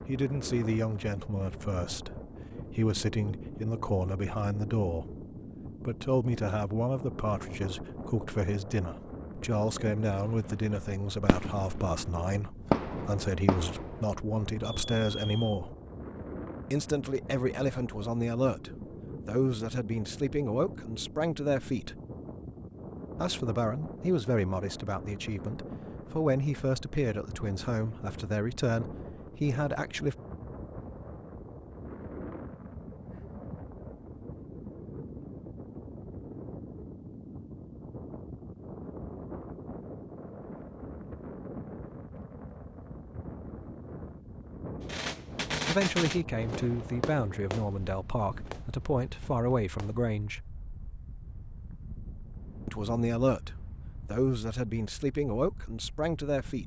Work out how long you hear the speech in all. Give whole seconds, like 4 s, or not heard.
37 s.